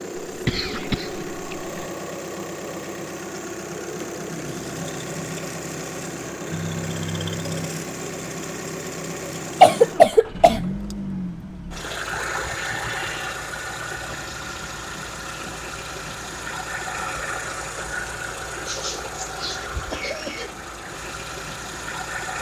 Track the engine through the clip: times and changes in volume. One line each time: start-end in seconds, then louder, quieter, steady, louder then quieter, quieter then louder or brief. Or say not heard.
0.0-22.3 steady.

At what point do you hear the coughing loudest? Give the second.
10 s.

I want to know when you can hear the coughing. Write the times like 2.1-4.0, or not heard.
0.2-1.8, 9.6-10.6, 18.6-20.6.